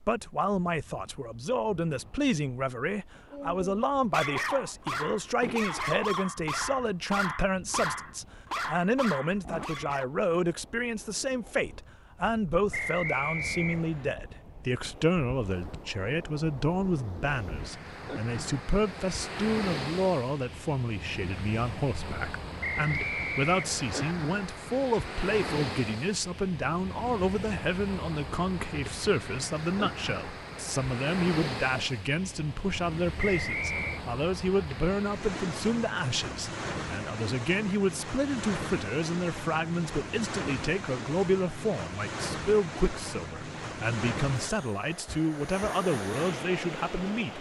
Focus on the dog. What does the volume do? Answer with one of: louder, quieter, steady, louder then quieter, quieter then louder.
steady.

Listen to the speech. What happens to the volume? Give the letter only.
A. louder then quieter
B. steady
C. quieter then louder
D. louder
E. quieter
B.